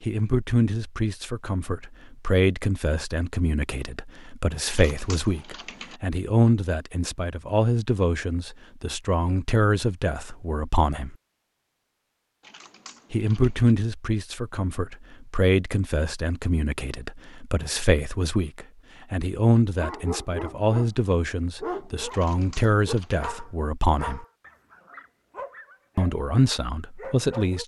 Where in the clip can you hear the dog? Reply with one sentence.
You can hear the dog from 19.8 to 20.9 s and from 21.6 to 27.6 s.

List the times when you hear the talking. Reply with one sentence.
You can hear the talking from 0.0 to 11.2 s, from 13.1 to 24.2 s and from 25.9 to 27.6 s.